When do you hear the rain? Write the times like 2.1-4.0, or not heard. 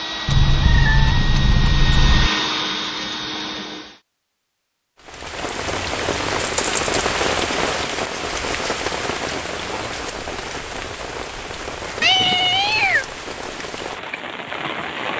5.0-15.1.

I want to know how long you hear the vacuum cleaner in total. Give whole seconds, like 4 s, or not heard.
4 s.